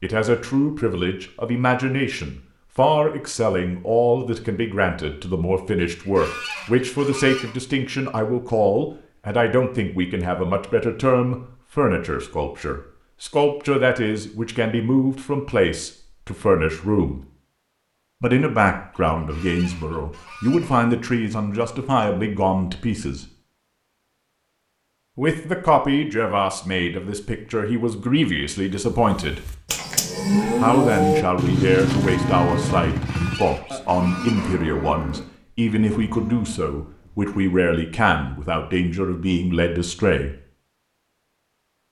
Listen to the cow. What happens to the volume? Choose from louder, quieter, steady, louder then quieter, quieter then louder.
quieter.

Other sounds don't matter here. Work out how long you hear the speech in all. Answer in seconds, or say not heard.
36 s.